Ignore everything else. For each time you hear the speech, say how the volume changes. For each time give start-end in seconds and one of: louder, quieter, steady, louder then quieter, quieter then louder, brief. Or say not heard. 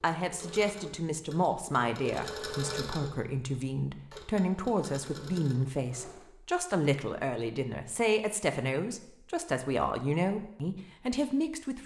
0.0-11.8 steady.